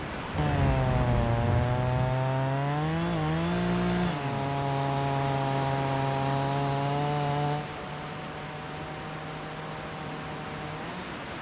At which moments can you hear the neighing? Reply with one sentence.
The neighing can't be heard in this clip.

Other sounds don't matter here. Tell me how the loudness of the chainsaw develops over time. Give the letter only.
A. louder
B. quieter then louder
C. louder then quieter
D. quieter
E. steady
D.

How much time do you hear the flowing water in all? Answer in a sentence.
The flowing water can be heard for 11 seconds in total.